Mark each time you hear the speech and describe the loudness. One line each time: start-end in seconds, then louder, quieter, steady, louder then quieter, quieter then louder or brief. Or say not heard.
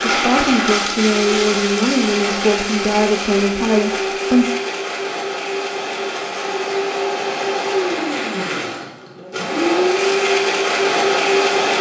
0.0-4.5 steady.